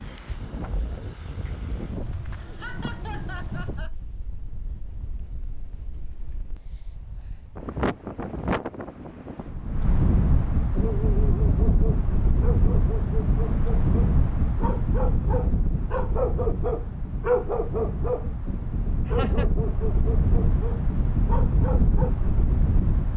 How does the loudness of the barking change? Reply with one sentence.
The volume of the barking goes up, then down.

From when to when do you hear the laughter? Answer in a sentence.
The laughter can be heard from 2.4 to 3.9 s and from 19.1 to 19.5 s.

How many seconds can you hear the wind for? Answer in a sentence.
You can hear the wind for 23 seconds altogether.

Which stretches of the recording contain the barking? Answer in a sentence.
You can hear the barking from 10.8 to 18.3 s and from 19.1 to 22.1 s.